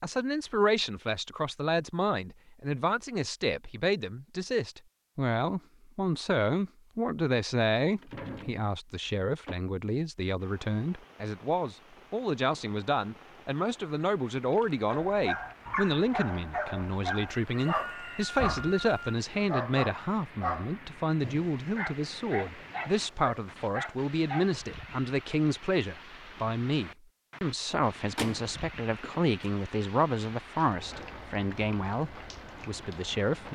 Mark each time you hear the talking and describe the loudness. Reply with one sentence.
You can hear the talking from 0.0 to 33.5 s, at a steady volume.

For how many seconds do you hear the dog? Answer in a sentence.
You can hear the dog for 10 seconds altogether.